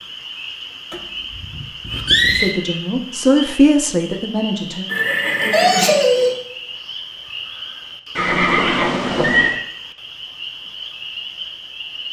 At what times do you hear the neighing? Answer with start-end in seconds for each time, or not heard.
0.9-2.5, 4.9-6.4, 8.2-9.6.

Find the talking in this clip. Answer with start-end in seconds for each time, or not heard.
2.3-4.8.